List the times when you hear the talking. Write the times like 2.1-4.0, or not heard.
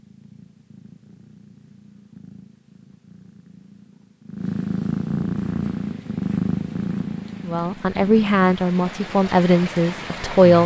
7.5-10.6.